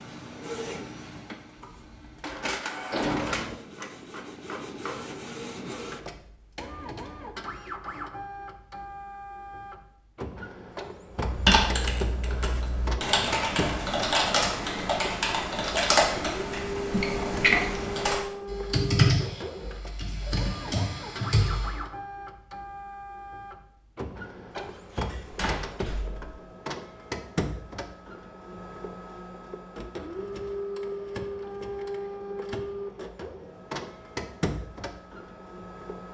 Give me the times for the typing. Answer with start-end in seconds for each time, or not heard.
11.2-21.8.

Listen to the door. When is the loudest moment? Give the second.
3 s.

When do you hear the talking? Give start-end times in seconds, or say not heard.
not heard.